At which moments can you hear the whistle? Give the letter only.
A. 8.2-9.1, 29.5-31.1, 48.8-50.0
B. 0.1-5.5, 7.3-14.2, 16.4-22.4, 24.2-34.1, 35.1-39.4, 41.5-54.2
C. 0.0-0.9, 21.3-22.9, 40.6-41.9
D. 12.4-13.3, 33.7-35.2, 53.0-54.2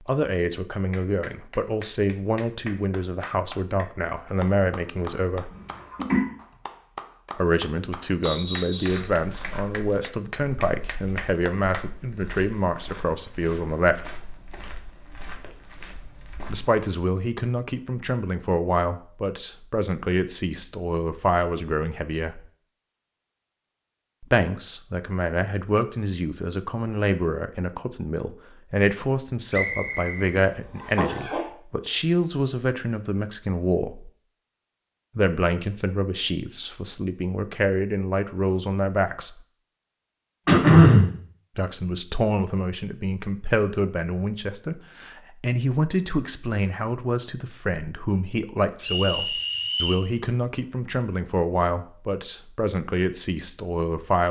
A.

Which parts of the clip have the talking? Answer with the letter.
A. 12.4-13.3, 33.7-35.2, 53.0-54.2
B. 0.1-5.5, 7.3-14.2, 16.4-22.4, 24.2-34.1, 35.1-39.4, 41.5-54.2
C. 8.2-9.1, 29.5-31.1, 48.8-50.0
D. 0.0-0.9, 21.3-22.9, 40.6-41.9
B.